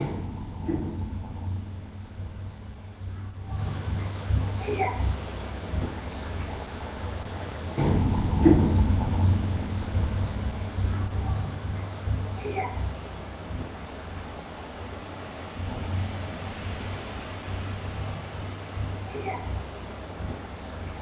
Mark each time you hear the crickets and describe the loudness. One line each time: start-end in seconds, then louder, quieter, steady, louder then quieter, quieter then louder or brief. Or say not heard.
0.0-20.9 louder then quieter.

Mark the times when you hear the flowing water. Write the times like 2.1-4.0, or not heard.
4.7-20.9.